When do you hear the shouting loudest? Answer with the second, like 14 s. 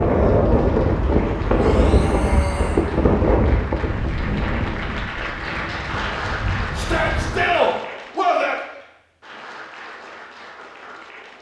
8 s.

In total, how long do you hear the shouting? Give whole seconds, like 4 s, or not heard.
3 s.